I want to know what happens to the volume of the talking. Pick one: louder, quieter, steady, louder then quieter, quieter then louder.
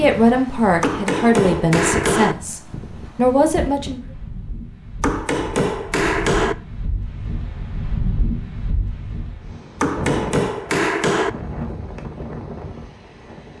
quieter then louder.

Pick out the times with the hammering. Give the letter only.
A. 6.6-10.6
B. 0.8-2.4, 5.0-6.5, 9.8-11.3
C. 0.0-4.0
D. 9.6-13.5
B.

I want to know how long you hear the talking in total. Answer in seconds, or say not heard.
4 s.